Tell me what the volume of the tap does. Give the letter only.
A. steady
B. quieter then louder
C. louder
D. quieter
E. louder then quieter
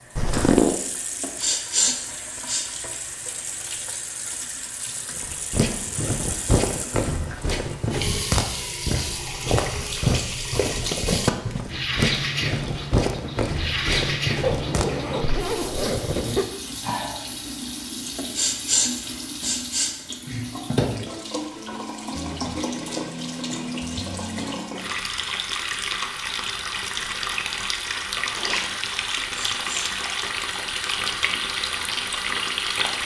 C.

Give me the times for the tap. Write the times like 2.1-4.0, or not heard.
0.0-33.0.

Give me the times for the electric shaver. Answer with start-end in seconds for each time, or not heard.
not heard.